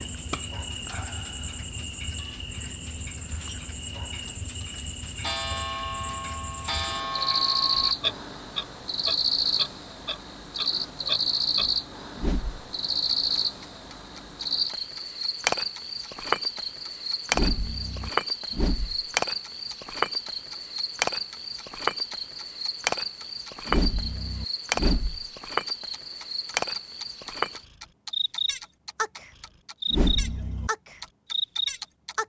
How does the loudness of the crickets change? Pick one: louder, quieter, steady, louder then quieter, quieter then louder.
louder.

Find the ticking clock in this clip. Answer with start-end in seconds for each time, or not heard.
0.0-32.1.